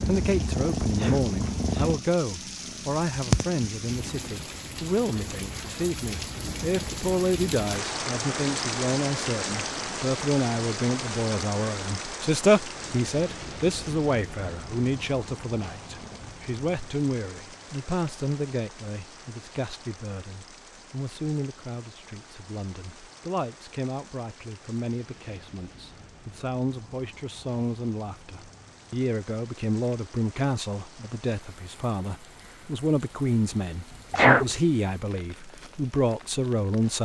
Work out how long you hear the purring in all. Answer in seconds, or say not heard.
4 s.